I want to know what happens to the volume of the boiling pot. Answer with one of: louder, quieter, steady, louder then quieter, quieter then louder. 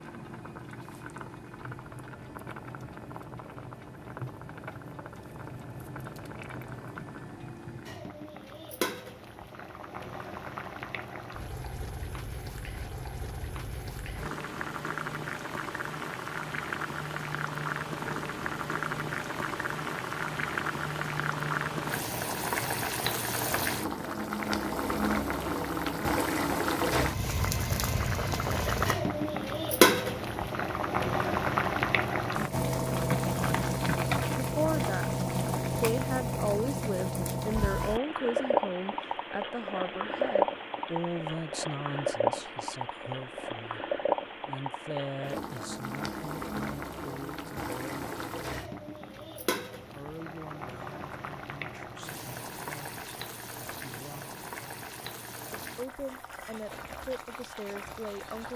louder then quieter.